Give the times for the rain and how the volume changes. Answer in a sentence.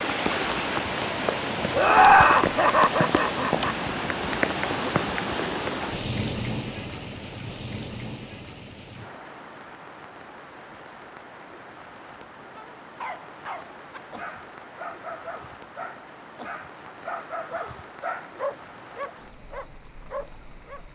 The rain can be heard from 0.0 to 20.9 s, getting quieter.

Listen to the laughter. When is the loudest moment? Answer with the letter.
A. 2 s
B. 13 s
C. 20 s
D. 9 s
A.